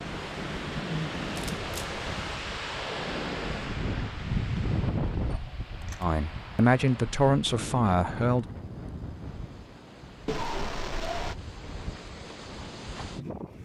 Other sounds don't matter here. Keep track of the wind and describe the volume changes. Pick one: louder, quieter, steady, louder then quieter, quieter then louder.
quieter.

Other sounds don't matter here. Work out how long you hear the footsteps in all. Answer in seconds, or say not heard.
not heard.